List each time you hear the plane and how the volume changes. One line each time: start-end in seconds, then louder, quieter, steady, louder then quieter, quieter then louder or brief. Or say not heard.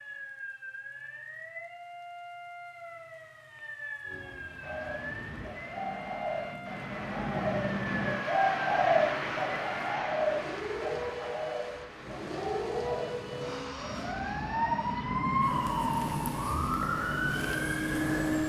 4.0-8.2 louder
11.9-18.4 louder then quieter.